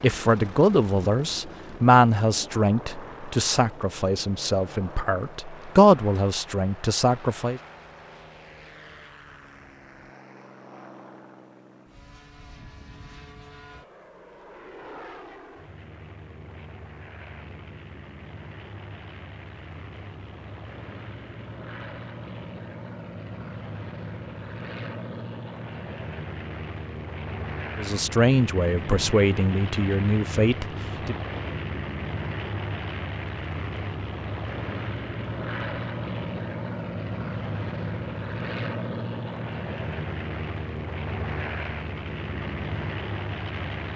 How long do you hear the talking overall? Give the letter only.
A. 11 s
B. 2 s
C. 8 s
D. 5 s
A.